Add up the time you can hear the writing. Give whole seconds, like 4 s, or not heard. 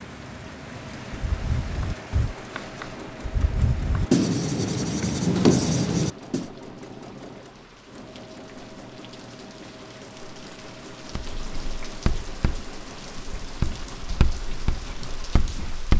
10 s.